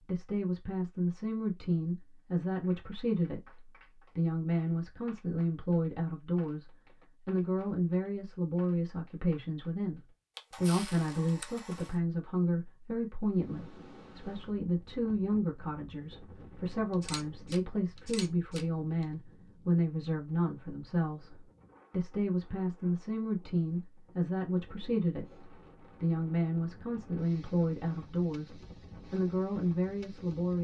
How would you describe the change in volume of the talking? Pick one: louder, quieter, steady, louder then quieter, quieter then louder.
steady.